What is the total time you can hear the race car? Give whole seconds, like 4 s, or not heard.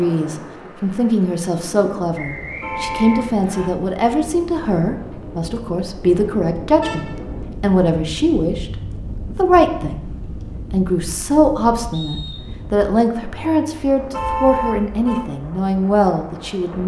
not heard.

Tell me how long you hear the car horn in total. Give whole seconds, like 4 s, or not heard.
3 s.